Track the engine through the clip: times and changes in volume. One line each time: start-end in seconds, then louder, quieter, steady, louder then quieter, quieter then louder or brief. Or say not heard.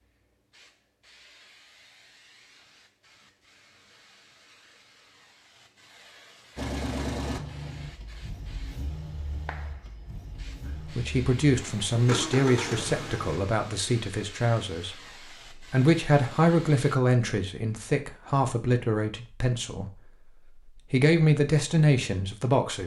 6.5-13.4 quieter then louder.